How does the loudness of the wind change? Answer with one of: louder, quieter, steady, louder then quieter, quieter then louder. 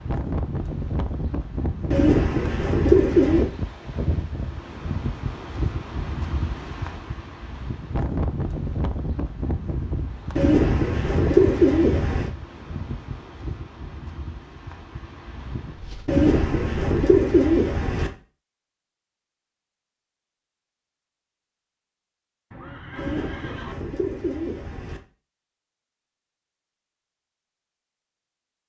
quieter.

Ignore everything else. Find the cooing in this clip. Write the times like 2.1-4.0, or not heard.
1.9-3.5, 10.3-12.3, 16.1-18.1, 22.9-25.0.